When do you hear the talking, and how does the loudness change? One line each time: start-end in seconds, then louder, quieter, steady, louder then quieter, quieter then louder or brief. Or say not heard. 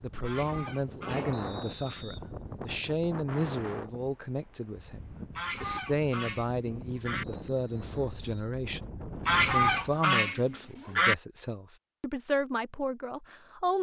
0.0-13.7 steady.